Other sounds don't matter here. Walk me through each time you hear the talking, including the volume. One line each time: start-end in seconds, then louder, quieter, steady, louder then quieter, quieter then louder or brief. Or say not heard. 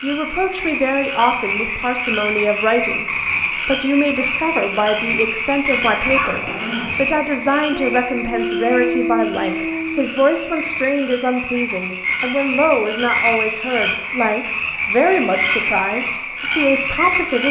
0.0-17.4 steady.